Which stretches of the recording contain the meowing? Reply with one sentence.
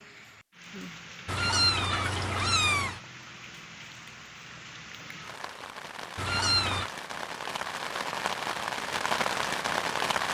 The meowing can be heard from 1.2 to 3.0 s and from 6.2 to 6.9 s.